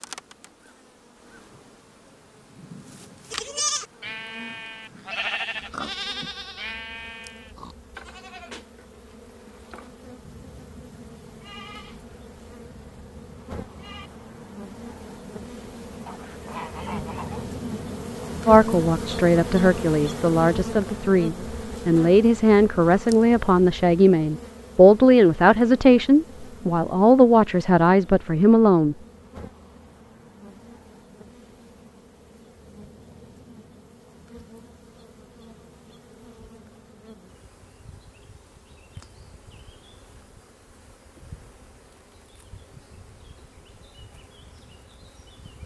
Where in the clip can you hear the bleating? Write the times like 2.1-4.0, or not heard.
3.3-14.1.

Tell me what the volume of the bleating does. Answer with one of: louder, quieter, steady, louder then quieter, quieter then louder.
quieter.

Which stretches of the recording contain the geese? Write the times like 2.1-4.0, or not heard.
16.1-17.6.